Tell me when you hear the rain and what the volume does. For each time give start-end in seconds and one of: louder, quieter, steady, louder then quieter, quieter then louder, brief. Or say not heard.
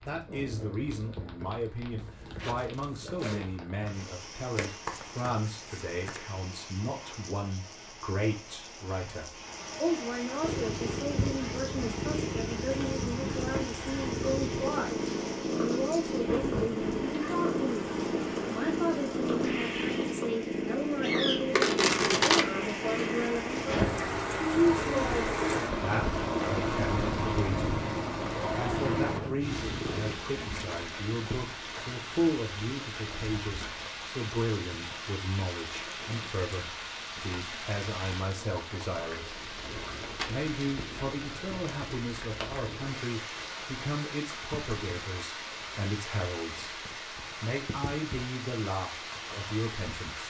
0.0-50.2 louder then quieter.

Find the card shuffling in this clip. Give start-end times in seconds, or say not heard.
4.5-6.2, 21.5-22.4, 39.5-40.5.